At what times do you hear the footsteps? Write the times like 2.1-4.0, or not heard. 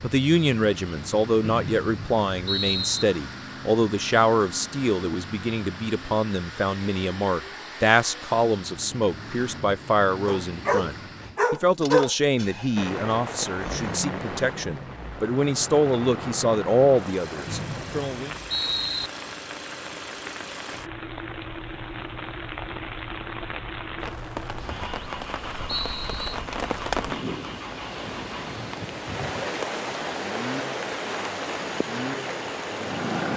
not heard.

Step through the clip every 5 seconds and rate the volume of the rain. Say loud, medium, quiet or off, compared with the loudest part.
off, off, loud, medium, medium, loud, loud.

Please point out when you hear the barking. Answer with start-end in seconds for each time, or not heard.
10.2-12.2.